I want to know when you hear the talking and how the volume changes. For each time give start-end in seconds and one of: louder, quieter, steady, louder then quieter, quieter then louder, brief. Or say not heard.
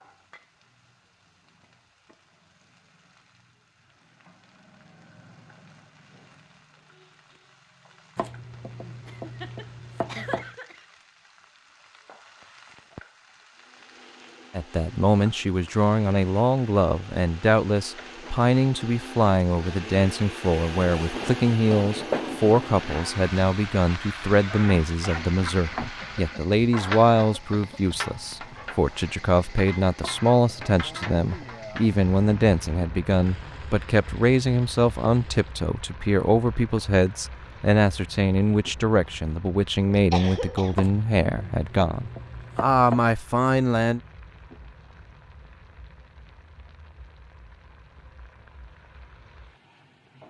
14.6-44.0 steady.